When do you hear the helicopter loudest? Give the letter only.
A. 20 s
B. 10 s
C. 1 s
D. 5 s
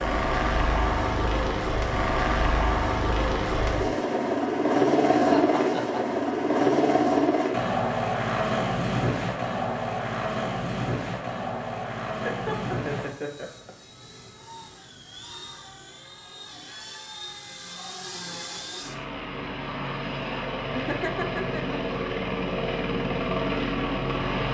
D.